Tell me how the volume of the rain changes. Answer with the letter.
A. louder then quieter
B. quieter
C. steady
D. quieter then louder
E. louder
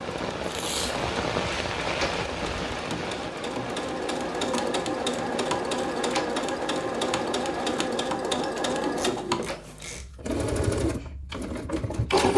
B.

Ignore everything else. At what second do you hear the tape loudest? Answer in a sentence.
The loudest moment of the tape is at 1 second.